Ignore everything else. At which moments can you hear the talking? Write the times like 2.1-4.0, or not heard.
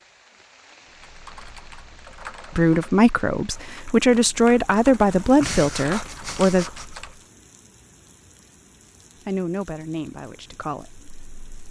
2.5-6.7, 9.2-11.6.